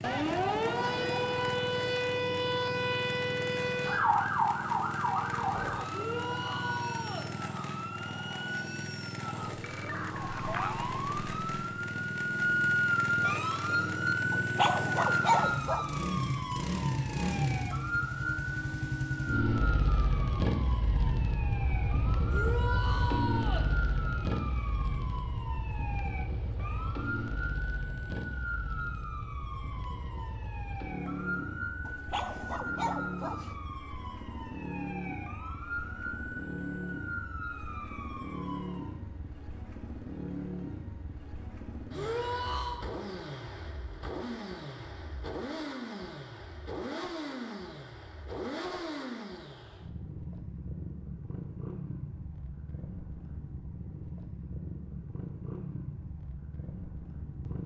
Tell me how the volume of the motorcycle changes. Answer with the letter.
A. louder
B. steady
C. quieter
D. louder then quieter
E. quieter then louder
D.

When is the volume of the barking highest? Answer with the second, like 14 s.
15 s.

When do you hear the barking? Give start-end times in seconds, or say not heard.
14.3-15.8, 31.9-33.5.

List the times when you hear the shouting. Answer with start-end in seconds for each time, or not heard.
5.9-7.3, 22.3-23.7, 41.9-42.9.